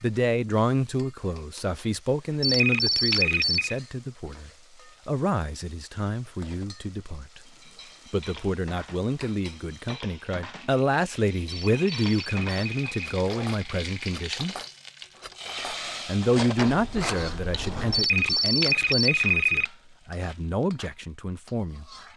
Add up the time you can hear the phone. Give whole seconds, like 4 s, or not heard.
5 s.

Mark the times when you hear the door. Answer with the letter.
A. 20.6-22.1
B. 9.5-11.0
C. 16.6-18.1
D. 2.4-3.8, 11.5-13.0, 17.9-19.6
C.